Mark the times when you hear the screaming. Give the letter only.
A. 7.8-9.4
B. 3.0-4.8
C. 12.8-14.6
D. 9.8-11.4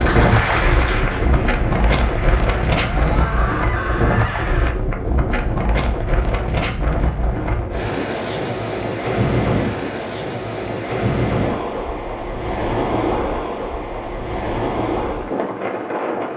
B.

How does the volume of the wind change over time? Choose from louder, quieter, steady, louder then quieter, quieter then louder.
steady.